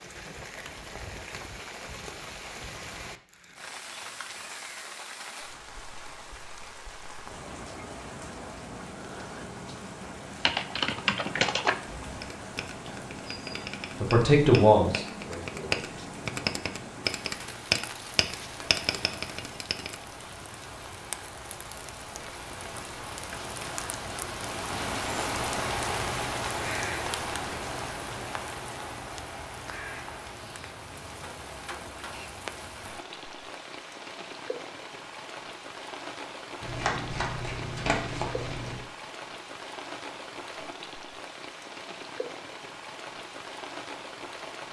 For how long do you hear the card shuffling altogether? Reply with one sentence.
The card shuffling can be heard for 2 seconds in total.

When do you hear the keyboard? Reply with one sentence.
The keyboard can be heard from 10.4 to 19.9 s.